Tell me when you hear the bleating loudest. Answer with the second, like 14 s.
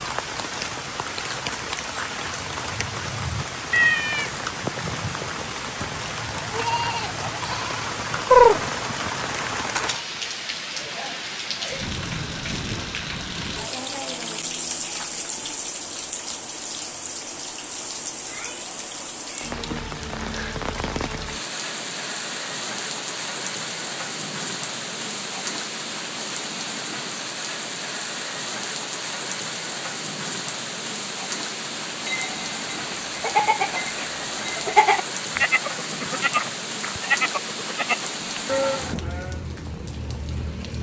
8 s.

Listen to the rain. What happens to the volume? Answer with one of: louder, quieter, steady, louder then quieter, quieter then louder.
steady.